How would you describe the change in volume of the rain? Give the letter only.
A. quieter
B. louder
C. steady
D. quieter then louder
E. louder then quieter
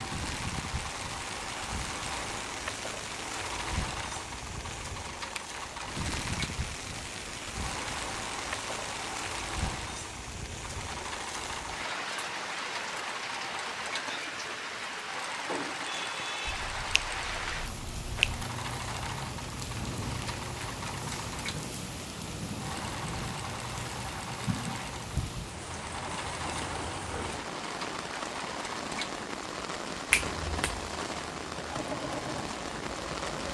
C.